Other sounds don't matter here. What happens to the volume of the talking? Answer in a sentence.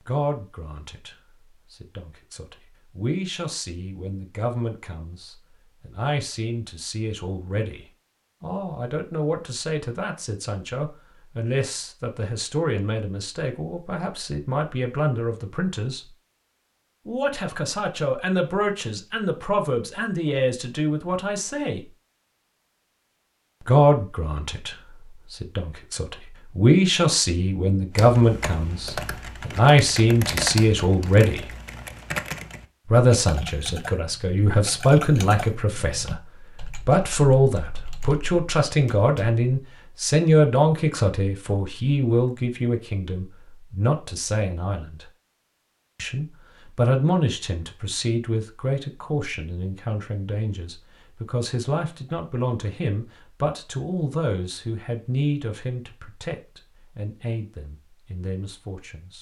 The loudness of the talking goes up, then down.